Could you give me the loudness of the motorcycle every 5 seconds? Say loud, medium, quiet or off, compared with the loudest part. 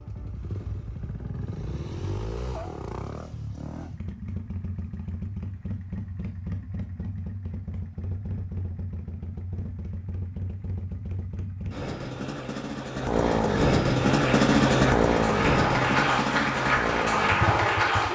quiet, quiet, loud, loud.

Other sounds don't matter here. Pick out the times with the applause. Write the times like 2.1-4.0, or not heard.
13.9-18.0.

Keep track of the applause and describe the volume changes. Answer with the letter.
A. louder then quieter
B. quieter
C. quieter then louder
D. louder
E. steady
D.